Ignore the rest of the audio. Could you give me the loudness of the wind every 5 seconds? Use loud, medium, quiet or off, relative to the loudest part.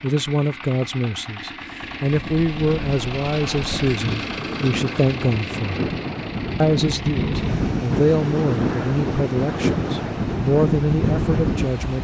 medium, loud, loud.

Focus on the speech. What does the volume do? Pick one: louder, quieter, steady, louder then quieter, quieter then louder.
steady.